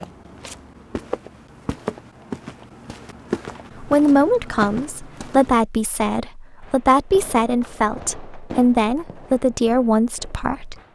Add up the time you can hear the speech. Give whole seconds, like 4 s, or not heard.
7 s.